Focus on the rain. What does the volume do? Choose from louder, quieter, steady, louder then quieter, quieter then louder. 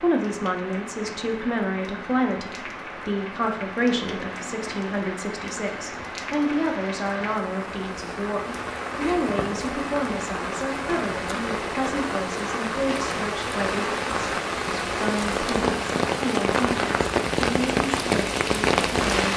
louder.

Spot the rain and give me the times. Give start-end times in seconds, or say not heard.
0.0-19.3.